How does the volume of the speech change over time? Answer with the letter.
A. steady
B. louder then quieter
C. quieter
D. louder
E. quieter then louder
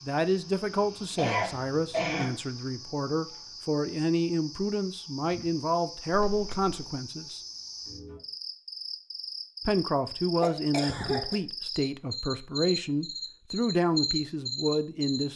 A.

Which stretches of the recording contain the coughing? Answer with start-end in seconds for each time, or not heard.
1.1-2.4, 6.1-6.9, 10.4-11.3.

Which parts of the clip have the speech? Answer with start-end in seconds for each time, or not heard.
0.0-7.4, 9.7-15.3.